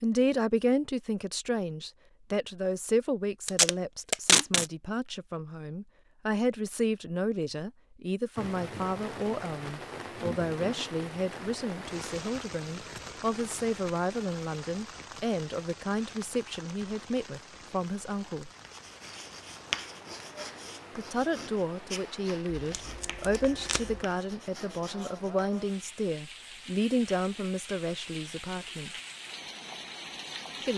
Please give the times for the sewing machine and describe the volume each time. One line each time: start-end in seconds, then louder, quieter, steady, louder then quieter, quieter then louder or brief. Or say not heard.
not heard.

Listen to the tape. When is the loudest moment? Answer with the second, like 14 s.
4 s.